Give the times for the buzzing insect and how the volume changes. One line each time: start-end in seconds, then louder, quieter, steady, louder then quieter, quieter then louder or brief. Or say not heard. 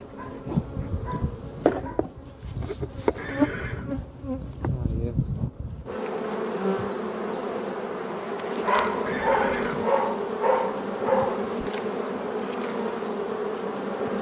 0.0-14.1 steady.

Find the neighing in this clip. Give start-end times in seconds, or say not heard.
3.1-3.9, 9.1-9.9.